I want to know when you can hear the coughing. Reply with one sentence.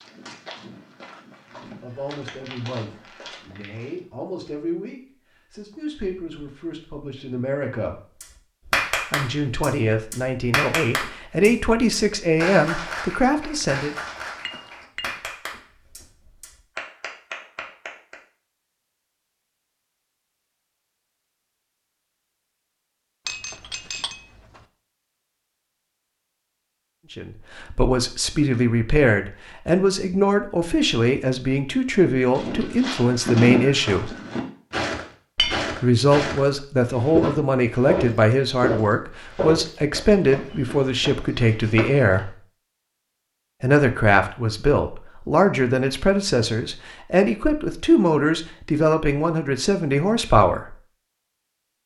The coughing can't be heard in this clip.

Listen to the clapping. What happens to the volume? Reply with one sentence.
The volume of the clapping goes down.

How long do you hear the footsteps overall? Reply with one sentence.
The footsteps can be heard for 14 seconds in total.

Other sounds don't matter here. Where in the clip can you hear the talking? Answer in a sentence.
The talking can be heard from 1.6 to 8.0 s, from 9.1 to 13.9 s, from 27.1 to 34.1 s, from 35.7 to 42.4 s and from 43.6 to 50.8 s.